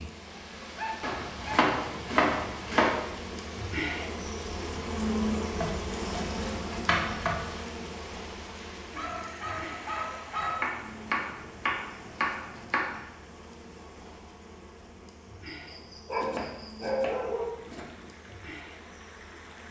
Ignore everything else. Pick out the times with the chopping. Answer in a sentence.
You can hear the chopping from 1.0 to 2.9 s, from 5.6 to 7.4 s, from 10.6 to 13.0 s and from 16.1 to 18.1 s.